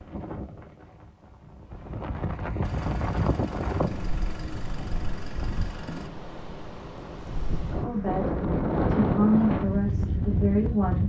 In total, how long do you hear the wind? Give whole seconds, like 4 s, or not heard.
11 s.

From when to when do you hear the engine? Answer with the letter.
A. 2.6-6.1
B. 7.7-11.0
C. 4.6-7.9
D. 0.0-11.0
A.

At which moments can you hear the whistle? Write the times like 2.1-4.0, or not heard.
not heard.